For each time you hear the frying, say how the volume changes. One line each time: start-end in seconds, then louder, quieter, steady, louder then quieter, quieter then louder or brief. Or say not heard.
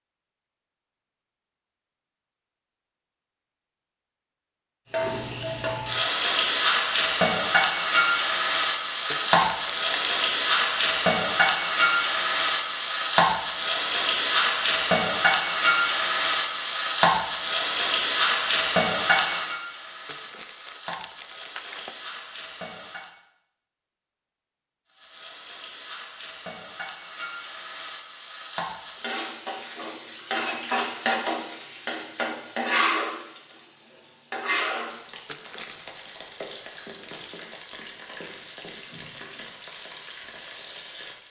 4.8-23.1 quieter
24.9-41.2 louder then quieter.